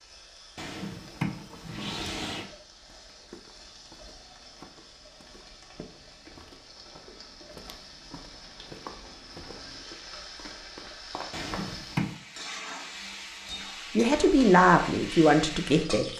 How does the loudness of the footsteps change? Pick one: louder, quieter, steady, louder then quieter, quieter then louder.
louder.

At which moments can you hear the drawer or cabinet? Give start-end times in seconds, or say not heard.
0.6-2.5, 11.3-12.2.